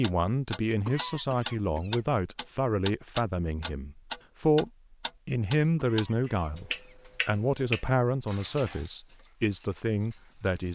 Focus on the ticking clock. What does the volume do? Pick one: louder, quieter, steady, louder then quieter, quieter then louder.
quieter.